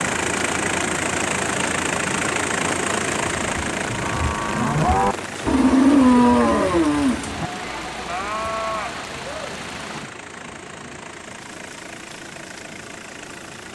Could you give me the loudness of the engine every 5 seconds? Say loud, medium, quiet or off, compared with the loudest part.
loud, quiet, quiet.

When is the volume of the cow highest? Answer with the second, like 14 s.
6 s.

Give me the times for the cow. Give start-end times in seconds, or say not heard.
3.1-9.0.